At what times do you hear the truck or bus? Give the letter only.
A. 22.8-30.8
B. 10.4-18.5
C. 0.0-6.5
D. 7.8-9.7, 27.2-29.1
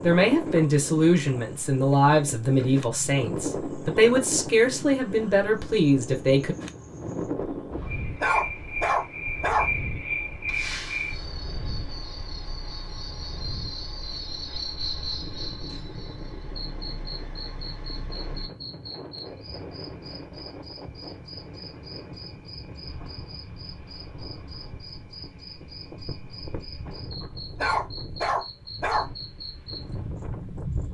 B.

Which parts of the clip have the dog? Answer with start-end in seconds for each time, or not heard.
7.8-9.7, 27.2-29.1.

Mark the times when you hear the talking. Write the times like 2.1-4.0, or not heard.
0.0-6.5.